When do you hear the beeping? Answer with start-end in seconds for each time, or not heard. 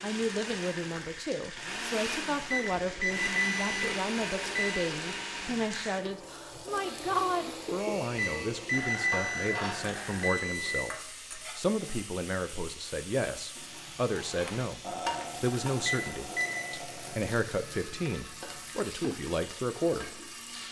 2.5-4.8, 8.2-10.8, 15.8-16.6.